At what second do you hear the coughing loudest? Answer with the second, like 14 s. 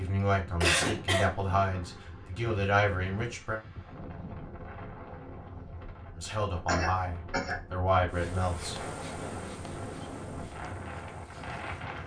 1 s.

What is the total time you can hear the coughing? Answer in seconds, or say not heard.
2 s.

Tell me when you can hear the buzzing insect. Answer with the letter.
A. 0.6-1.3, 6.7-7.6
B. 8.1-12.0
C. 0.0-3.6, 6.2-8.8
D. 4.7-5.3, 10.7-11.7
B.